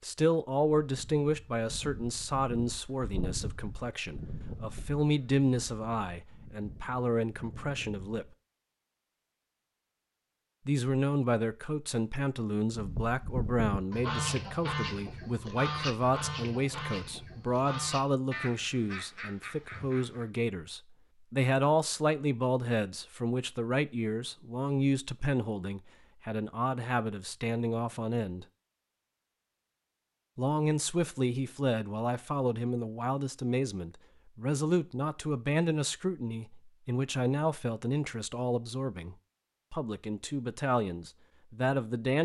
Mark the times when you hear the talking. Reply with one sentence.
You can hear the talking from 0.0 to 8.2 s, from 10.7 to 28.4 s and from 30.4 to 42.2 s.